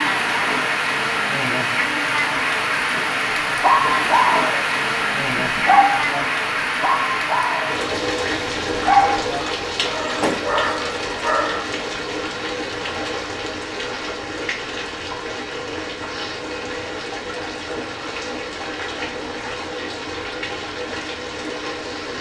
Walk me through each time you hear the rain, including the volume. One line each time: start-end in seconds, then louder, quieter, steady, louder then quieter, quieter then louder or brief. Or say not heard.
0.0-22.1 quieter.